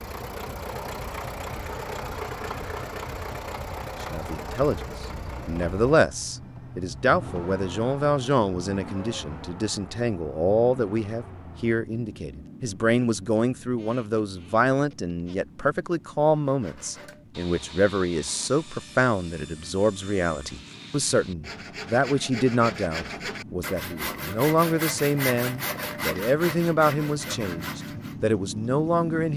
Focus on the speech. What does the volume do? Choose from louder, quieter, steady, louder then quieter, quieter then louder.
steady.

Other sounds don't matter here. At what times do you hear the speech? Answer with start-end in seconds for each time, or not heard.
4.0-29.3.